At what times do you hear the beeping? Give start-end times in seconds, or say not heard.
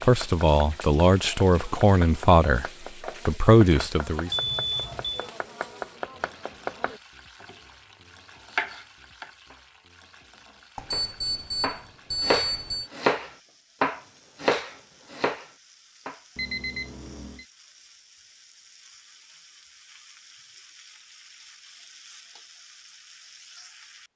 4.3-5.3, 10.8-12.9, 16.4-17.4.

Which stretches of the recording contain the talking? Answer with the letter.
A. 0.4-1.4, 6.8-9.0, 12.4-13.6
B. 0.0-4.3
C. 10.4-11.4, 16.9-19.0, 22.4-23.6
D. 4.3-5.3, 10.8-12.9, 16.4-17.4
B.